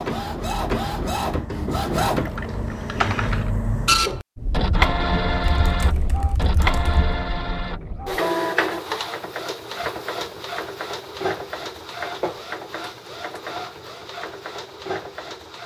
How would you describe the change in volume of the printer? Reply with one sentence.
The volume of the printer goes down.